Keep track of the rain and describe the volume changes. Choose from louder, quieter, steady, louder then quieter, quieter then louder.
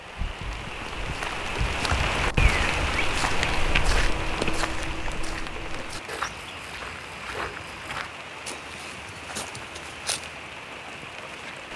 quieter.